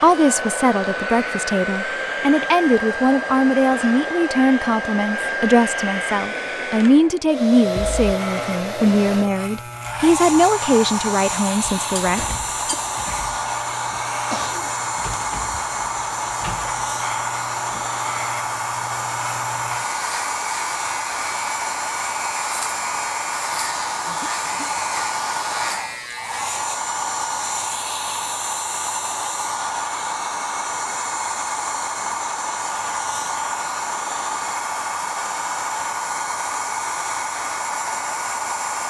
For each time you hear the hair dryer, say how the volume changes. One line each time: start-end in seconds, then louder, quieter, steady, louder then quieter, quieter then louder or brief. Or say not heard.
0.0-38.8 steady.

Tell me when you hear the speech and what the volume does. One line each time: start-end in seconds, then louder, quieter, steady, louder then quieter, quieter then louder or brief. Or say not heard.
0.0-12.8 steady.